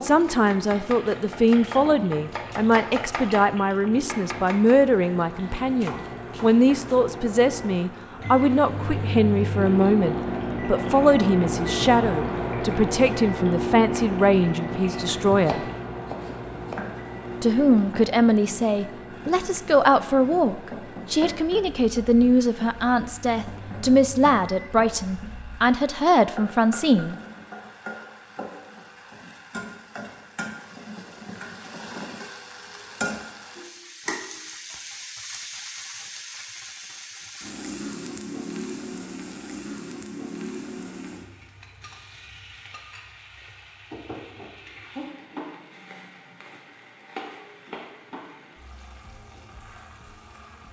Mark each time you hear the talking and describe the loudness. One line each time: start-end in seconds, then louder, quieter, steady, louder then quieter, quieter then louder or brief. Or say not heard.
0.0-15.7 steady
17.4-27.1 steady.